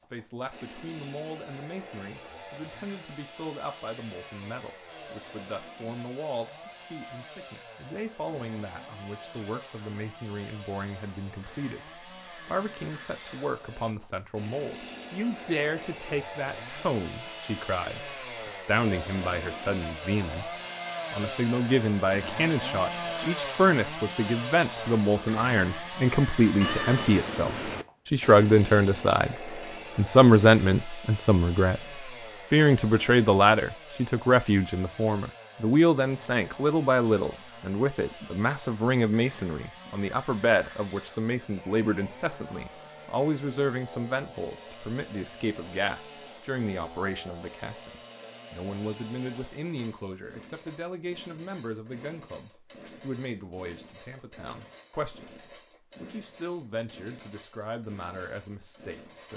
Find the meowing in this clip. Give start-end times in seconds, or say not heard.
26.6-27.9.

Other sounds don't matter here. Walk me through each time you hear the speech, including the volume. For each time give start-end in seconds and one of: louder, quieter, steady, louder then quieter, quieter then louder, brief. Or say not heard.
0.1-31.8 louder
32.5-59.3 quieter.